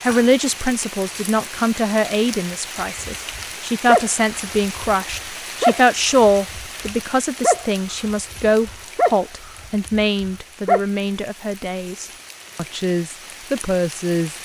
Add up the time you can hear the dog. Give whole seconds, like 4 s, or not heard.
8 s.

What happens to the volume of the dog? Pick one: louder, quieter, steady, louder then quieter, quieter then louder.
quieter then louder.